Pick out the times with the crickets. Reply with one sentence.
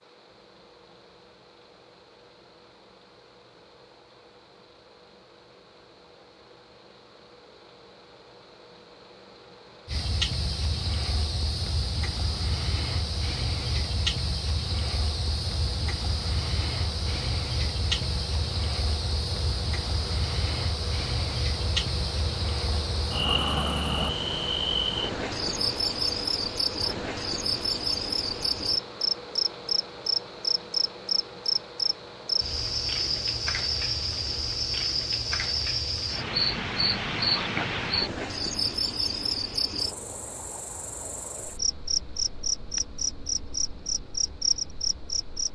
You can hear the crickets from 9.8 to 45.5 s.